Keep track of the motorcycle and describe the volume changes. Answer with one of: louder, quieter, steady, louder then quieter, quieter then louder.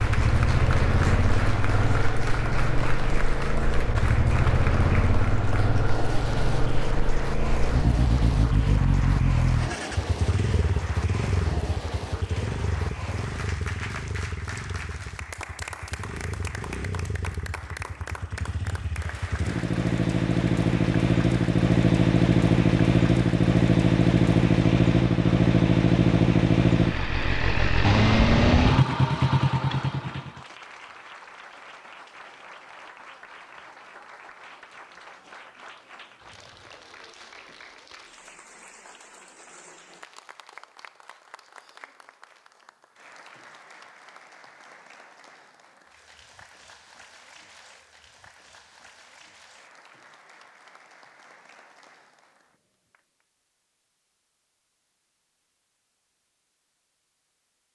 quieter then louder.